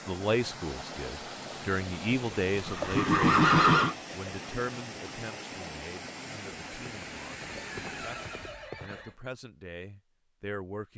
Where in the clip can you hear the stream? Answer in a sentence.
You can hear the stream from 0.0 to 8.7 s.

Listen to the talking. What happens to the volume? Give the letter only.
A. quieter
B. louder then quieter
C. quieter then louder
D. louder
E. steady
C.